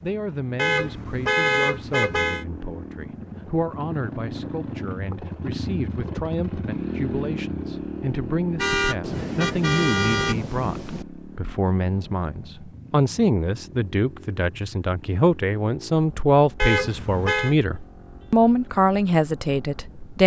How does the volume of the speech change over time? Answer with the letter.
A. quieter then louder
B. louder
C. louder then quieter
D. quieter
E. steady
B.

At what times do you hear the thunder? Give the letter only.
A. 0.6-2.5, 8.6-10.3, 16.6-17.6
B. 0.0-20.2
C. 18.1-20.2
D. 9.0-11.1
D.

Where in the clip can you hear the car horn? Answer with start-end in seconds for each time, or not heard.
0.6-2.5, 8.6-10.3, 16.6-17.6.